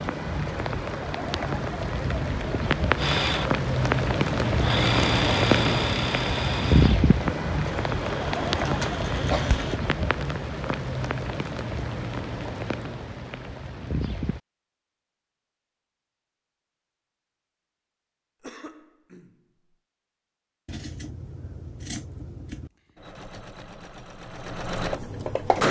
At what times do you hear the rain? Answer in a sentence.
The rain can be heard from 0.0 to 14.4 s.